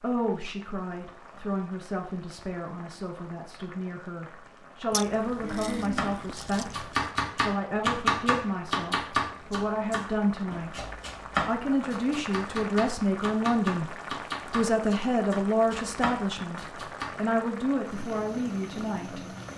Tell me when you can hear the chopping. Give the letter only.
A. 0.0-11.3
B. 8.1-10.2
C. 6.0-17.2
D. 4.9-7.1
C.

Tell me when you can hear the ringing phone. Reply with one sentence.
The ringing phone can't be heard in this clip.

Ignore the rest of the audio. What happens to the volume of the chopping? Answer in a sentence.
The loudness of the chopping goes down.